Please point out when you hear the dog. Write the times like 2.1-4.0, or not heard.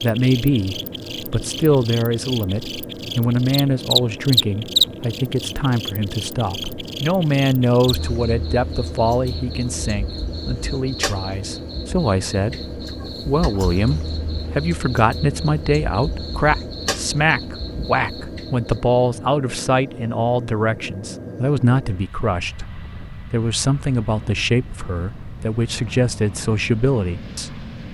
not heard.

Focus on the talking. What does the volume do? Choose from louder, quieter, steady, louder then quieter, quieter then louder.
steady.